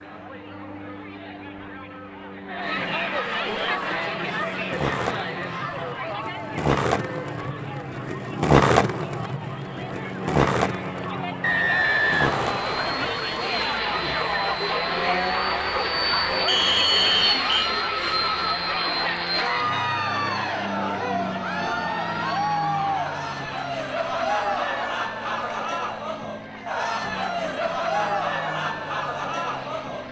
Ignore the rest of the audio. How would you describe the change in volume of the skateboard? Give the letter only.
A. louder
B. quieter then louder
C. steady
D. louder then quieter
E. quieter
D.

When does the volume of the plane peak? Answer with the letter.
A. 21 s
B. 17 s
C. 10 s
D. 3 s
B.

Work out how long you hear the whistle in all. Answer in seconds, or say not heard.
3 s.